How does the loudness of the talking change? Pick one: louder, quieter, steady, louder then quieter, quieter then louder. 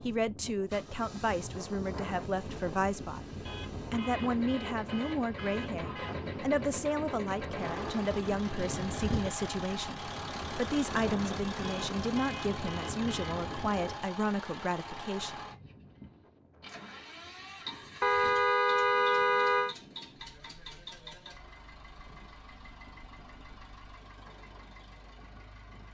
steady.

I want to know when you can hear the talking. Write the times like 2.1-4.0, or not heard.
0.0-15.3.